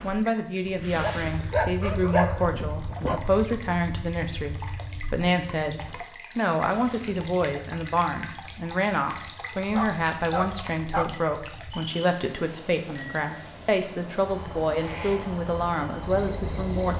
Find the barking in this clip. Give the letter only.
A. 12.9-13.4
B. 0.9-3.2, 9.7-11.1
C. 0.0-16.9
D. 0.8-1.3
B.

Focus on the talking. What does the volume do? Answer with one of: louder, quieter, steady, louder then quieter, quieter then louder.
steady.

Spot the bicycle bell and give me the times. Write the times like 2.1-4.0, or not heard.
12.9-13.4.